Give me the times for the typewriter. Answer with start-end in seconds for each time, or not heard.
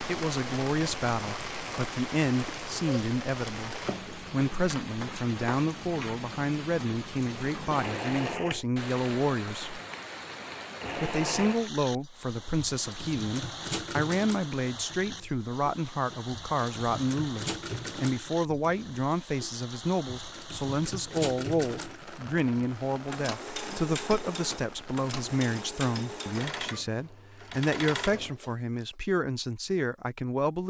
not heard.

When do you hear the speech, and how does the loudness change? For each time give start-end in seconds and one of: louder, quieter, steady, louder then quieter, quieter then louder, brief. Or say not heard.
0.0-9.8 steady
10.9-30.6 steady.